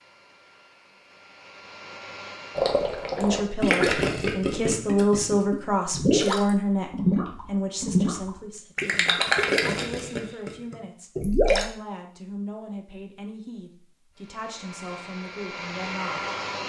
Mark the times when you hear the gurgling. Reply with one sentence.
You can hear the gurgling from 2.5 to 11.7 s.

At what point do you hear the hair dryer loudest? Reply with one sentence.
The volume of the hair dryer peaks at 16 seconds.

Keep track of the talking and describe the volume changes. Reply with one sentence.
The loudness of the talking goes down.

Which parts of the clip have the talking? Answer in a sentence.
You can hear the talking from 3.1 to 16.6 s.